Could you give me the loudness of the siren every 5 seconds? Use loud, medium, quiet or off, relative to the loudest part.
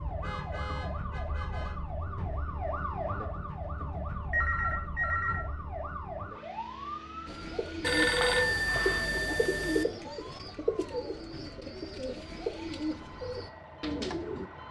loud, loud, medium.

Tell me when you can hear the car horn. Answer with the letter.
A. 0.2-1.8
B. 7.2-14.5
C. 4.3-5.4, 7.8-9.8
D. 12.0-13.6
A.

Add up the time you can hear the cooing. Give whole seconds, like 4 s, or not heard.
7 s.